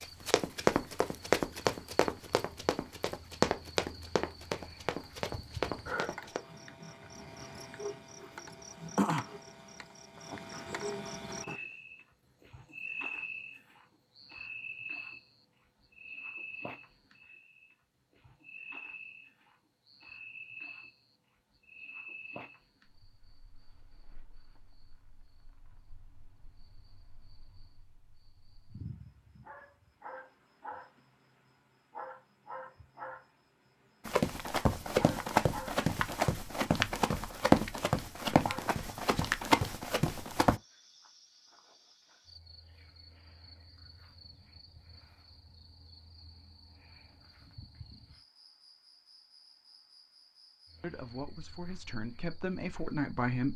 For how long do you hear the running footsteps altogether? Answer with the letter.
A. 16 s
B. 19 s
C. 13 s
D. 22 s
C.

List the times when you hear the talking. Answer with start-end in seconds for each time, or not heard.
50.8-53.5.